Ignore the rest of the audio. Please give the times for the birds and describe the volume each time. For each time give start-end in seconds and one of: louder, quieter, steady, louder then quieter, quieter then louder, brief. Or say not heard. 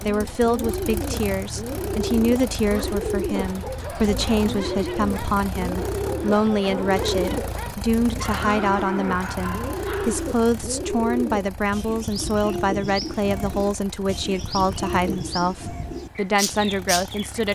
0.0-17.4 steady.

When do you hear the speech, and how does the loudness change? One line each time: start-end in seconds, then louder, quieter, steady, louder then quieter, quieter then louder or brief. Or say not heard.
0.0-17.4 steady.